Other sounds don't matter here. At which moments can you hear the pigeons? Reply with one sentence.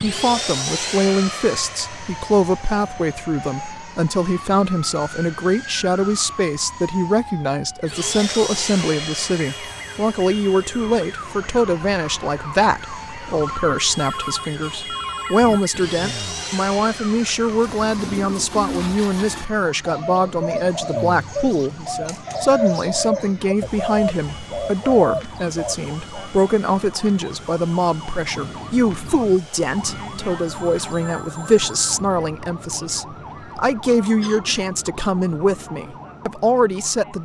You can hear the pigeons from 17.4 to 26.3 s.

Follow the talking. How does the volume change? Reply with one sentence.
The volume of the talking stays about the same.